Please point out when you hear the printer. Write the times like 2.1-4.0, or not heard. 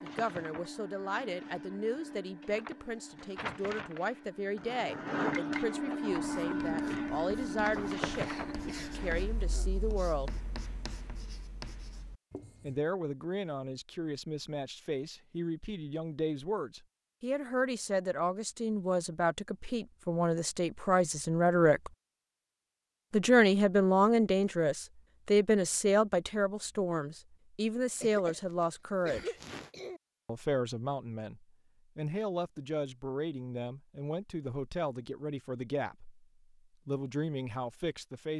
0.0-9.3.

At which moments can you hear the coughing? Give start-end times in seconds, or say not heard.
8.2-9.8, 27.9-30.0.